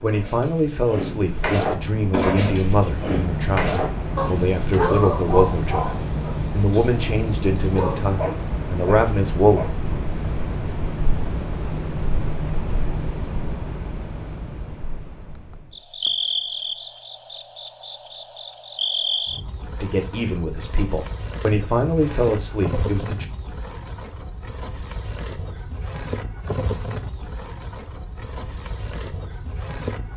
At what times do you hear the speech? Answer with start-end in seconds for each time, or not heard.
0.0-9.7, 19.8-23.2.